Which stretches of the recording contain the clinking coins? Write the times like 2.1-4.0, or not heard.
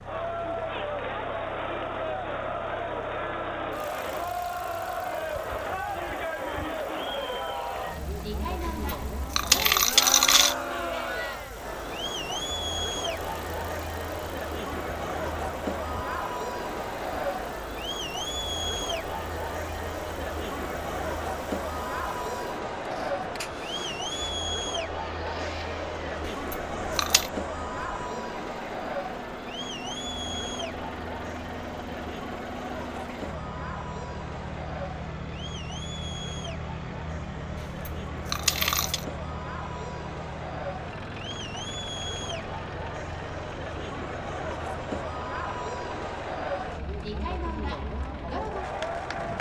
8.6-10.6, 26.2-27.3, 37.5-39.0.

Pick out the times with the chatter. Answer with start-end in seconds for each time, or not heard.
0.0-49.3.